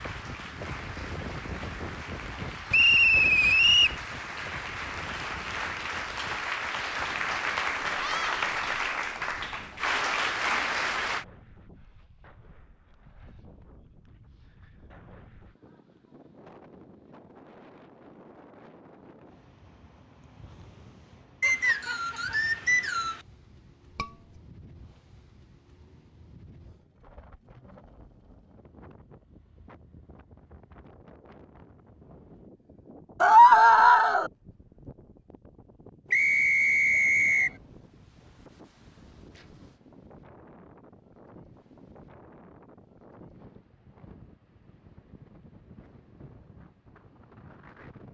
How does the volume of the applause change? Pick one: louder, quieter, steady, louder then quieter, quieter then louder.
louder.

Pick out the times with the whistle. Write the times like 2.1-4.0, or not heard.
2.7-4.0, 21.4-23.2, 36.1-37.5.